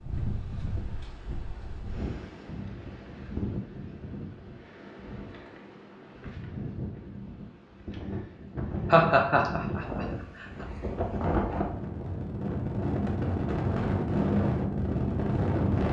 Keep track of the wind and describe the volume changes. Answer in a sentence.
The loudness of the wind goes up.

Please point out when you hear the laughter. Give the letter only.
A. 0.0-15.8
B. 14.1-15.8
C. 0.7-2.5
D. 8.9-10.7
D.